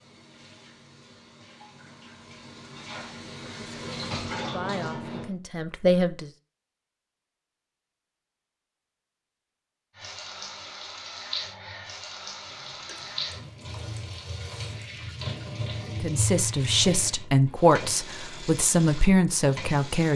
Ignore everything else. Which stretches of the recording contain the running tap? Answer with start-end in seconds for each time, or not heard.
0.0-5.3, 9.9-20.1.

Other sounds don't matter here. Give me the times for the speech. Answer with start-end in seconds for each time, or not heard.
3.6-6.3, 16.0-20.1.